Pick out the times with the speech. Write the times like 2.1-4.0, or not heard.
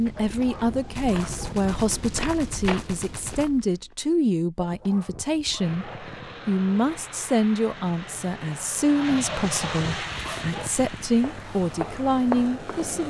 0.0-13.0.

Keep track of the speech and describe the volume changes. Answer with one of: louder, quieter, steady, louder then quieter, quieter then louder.
steady.